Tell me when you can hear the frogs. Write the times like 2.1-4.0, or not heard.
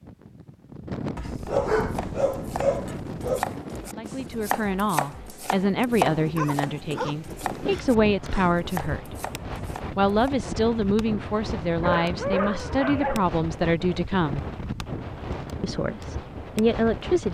not heard.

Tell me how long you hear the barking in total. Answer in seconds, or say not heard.
6 s.